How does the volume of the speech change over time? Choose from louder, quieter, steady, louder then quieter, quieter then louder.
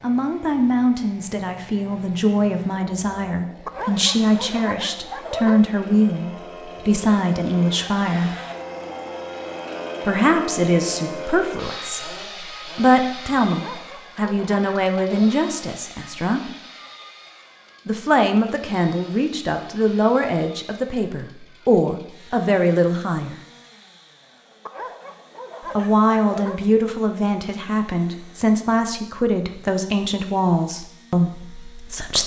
steady.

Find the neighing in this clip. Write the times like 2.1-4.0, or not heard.
not heard.